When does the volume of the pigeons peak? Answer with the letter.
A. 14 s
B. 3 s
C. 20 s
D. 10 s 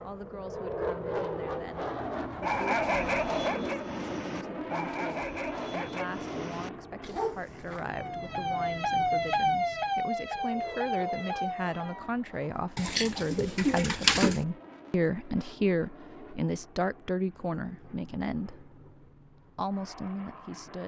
A.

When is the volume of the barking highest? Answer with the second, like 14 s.
3 s.